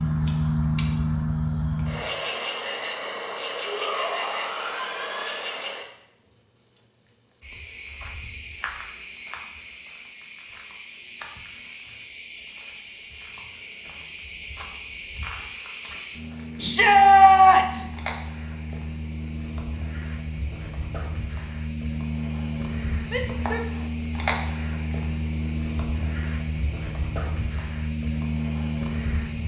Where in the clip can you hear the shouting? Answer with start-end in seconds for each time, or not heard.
3.6-5.6, 16.6-17.9, 23.1-23.6.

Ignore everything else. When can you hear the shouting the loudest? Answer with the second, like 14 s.
17 s.